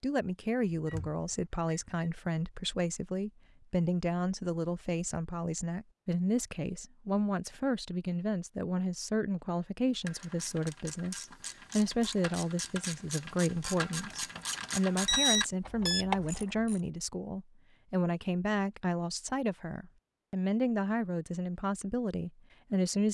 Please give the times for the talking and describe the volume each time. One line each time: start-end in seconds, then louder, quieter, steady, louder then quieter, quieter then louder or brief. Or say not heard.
0.0-23.1 steady.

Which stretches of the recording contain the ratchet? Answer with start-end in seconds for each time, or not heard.
9.9-16.8.